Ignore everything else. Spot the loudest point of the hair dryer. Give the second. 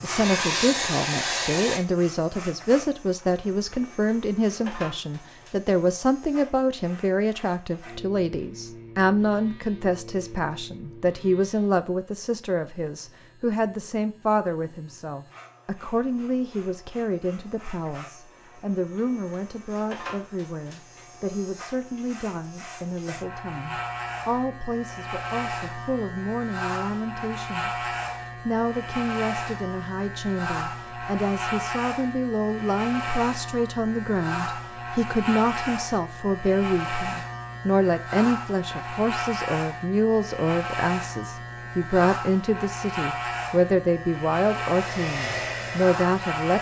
1 s.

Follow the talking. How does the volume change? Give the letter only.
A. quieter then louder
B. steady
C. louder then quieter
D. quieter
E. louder
A.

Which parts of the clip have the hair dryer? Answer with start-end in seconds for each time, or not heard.
0.0-1.8, 44.8-46.5.